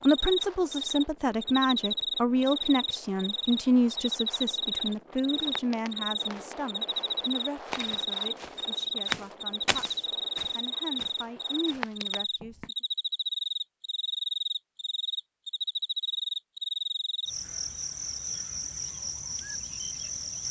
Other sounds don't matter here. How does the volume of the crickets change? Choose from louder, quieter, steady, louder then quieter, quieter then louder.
steady.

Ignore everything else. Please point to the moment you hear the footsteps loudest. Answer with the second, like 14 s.
9 s.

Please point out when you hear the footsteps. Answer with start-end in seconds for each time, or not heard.
5.3-12.7.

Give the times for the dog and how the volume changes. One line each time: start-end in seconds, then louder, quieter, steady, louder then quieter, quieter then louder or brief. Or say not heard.
not heard.